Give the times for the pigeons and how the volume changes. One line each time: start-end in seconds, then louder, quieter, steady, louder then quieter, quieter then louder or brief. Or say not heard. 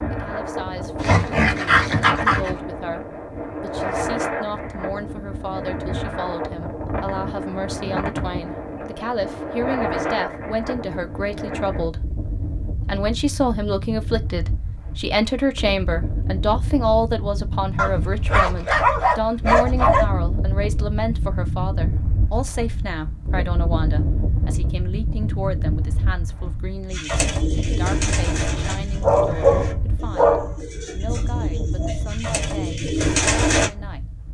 26.9-33.7 quieter then louder.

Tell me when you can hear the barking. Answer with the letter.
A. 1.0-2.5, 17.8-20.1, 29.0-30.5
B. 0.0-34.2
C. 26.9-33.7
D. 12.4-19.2
A.